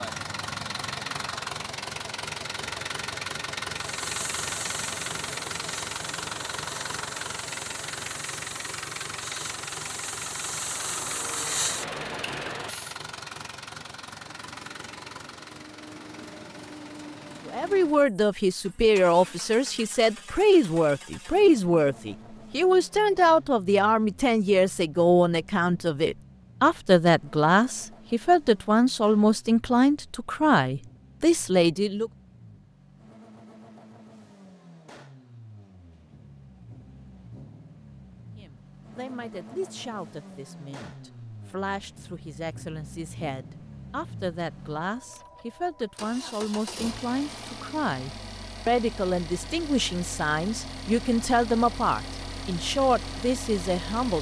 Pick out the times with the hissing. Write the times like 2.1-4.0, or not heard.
3.8-12.9.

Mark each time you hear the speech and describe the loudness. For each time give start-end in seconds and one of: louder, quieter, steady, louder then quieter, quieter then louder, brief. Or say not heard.
17.4-32.1 steady
38.4-54.1 louder.